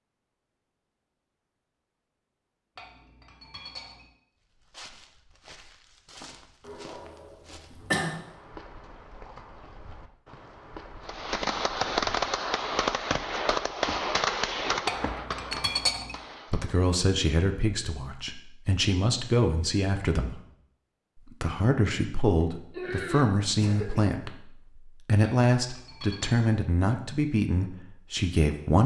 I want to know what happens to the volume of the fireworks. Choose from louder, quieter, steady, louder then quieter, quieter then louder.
quieter.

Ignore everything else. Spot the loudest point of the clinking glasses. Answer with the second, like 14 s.
16 s.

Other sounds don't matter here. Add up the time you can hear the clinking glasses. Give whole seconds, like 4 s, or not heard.
4 s.